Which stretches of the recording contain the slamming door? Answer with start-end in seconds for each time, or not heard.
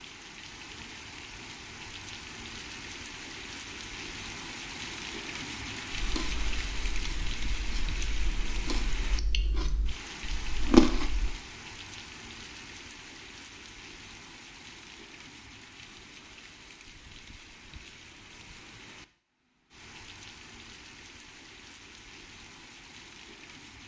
not heard.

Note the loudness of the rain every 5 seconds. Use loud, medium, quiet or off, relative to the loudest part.
loud, loud, medium, medium, medium.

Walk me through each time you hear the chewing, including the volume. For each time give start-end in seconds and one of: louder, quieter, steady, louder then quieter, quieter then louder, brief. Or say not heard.
6.0-11.3 louder.